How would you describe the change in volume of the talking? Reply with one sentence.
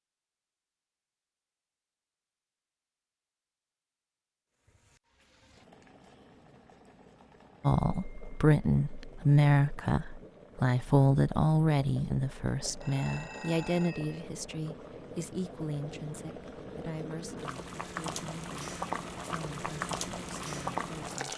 The loudness of the talking goes down.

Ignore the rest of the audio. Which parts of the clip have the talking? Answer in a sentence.
You can hear the talking from 7.6 to 21.3 s.